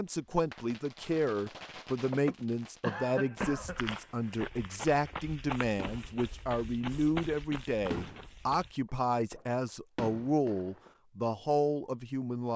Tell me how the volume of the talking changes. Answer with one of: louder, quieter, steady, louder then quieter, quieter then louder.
steady.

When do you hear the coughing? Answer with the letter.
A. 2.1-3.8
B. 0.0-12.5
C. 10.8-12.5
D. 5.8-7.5
A.